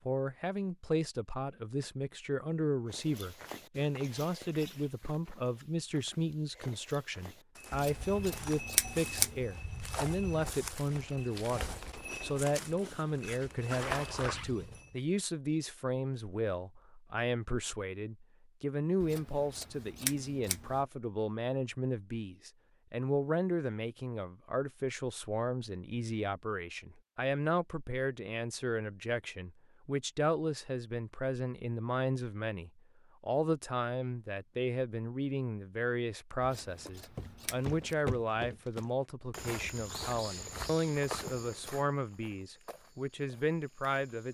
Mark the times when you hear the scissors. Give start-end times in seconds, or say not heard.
7.7-9.4, 19.0-20.8, 36.4-38.0.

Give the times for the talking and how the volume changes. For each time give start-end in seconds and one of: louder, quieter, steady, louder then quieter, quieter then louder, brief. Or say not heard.
0.1-44.2 steady.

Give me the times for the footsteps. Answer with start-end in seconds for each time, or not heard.
2.9-14.9, 36.9-44.2.